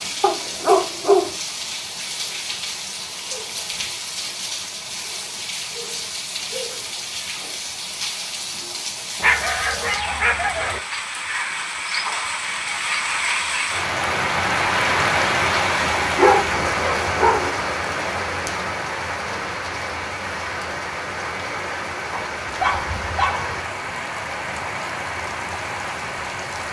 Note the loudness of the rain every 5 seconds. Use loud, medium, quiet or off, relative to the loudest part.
medium, medium, loud, loud, medium, medium.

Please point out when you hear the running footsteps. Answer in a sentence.
The running footsteps can't be heard in this clip.